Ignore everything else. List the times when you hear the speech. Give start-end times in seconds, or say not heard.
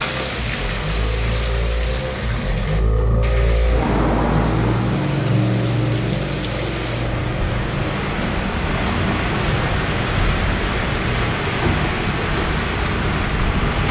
not heard.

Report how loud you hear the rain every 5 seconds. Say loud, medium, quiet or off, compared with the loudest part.
medium, loud, loud.